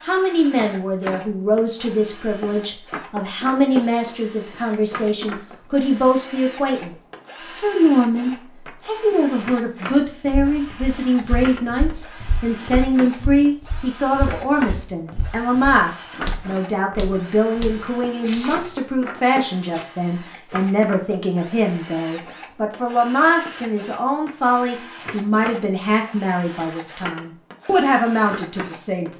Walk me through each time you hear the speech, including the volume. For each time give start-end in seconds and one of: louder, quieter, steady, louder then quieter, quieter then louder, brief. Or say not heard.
0.0-29.1 steady.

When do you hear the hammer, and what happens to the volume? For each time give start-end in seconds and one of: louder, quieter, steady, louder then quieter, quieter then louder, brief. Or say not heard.
not heard.